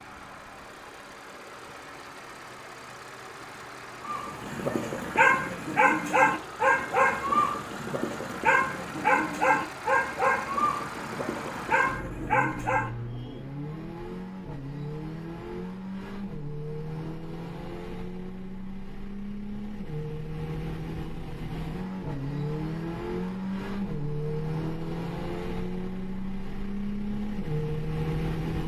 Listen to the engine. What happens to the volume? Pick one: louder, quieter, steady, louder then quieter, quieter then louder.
louder.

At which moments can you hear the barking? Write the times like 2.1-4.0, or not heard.
4.0-12.9.